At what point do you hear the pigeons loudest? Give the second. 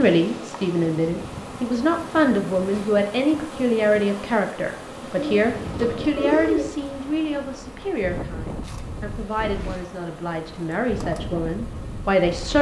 6 s.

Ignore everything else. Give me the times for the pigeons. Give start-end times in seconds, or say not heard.
5.2-6.7.